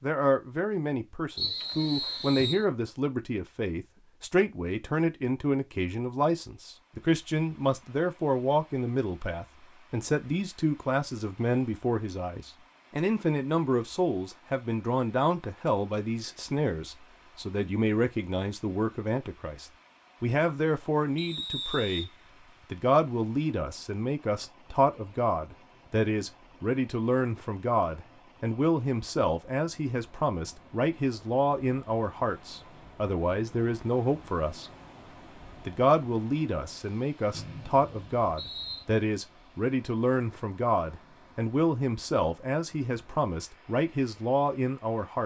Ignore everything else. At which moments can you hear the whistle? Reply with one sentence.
You can hear the whistle from 1.4 to 2.6 s, from 21.1 to 22.6 s and from 37.3 to 38.9 s.